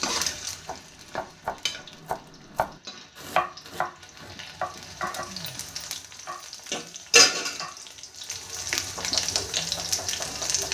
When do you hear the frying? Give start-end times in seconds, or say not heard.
0.0-10.6.